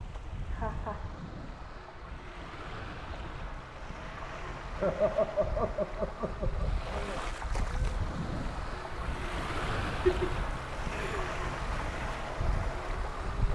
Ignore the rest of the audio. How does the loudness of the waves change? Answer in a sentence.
The loudness of the waves goes up.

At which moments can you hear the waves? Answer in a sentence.
The waves can be heard from 0.0 to 13.5 s.